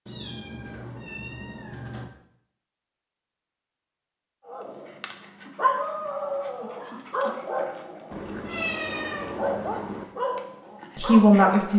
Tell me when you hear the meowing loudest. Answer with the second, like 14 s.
9 s.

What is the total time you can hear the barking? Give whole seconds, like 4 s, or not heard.
7 s.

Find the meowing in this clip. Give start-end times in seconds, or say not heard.
0.1-2.0, 8.1-10.1.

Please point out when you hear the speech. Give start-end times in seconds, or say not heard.
10.9-11.7.